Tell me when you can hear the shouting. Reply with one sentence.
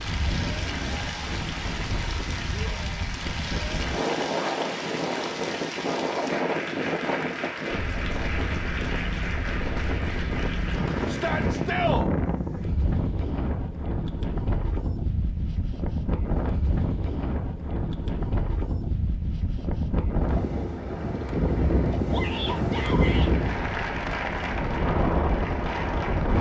You can hear the shouting from 2.5 to 3.1 s, from 11.1 to 12.1 s and from 22.1 to 23.3 s.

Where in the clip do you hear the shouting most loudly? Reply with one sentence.
The volume of the shouting peaks at 12 seconds.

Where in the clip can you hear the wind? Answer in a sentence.
The wind can be heard from 0.0 to 26.3 s.